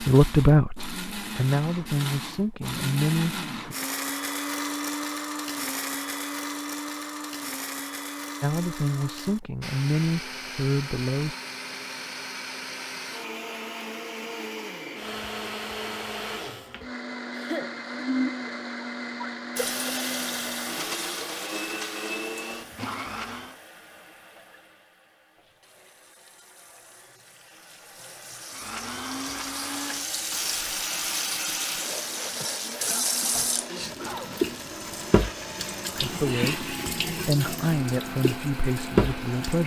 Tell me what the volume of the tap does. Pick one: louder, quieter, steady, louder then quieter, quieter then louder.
quieter then louder.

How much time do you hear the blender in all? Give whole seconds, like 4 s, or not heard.
35 s.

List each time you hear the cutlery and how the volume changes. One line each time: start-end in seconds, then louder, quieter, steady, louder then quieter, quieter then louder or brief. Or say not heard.
not heard.